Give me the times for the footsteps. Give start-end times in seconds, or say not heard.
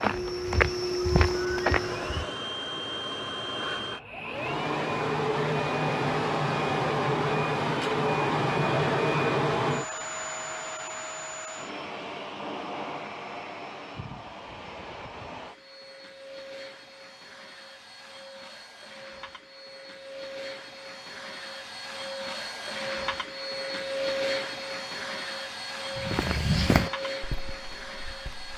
0.0-2.2, 25.9-28.5.